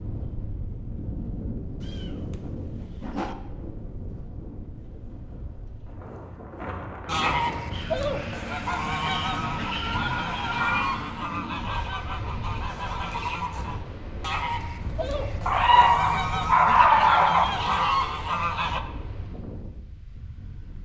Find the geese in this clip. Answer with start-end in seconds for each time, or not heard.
7.0-18.8.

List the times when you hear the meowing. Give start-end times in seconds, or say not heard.
1.8-3.4, 9.7-11.1, 15.4-17.4.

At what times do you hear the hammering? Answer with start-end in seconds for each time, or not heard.
not heard.